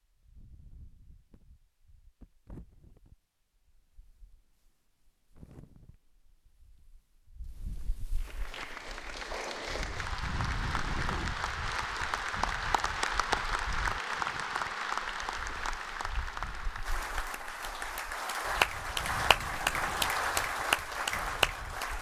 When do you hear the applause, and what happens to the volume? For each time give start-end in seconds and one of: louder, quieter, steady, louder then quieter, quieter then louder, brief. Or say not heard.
8.2-21.9 louder.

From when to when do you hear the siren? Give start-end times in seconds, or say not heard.
not heard.